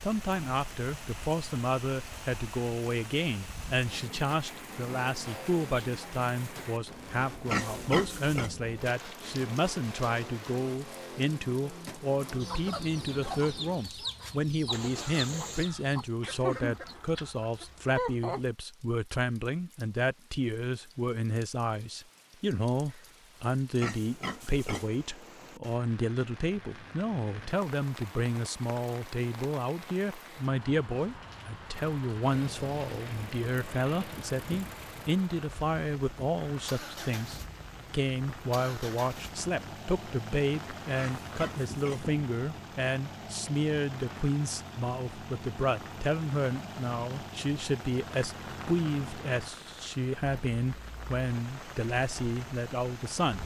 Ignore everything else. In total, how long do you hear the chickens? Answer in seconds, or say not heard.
6 s.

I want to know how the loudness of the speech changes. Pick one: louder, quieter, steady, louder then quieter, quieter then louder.
steady.